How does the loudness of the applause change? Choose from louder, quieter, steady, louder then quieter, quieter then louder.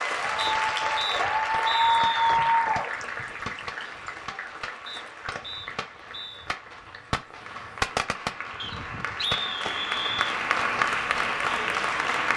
quieter then louder.